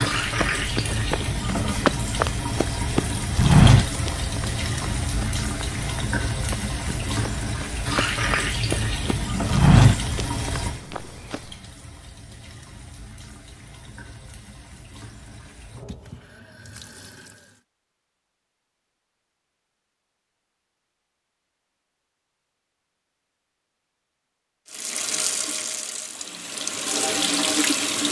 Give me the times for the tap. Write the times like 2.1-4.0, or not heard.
0.0-17.6, 24.7-28.0.